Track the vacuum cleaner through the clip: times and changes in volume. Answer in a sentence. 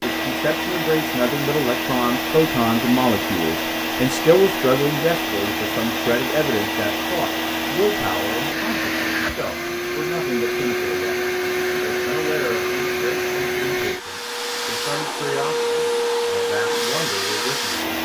You can hear the vacuum cleaner from 0.0 to 18.0 s, at a steady volume.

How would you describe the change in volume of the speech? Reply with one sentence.
The volume of the speech goes down.